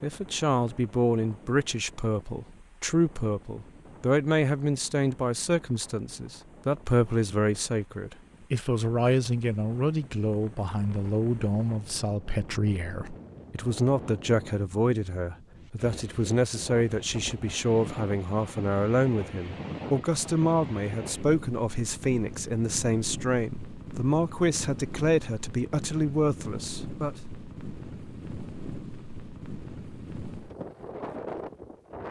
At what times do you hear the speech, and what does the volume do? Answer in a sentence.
The speech can be heard from 0.0 to 27.1 s, at a steady volume.